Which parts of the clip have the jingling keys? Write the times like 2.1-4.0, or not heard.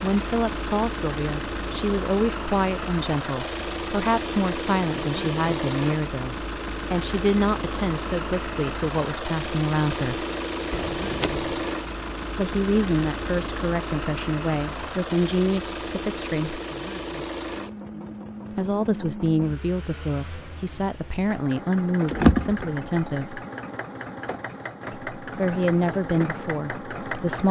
10.7-11.7, 22.1-23.1.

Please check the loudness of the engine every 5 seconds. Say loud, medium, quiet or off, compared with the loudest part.
loud, loud, loud, loud, medium, loud.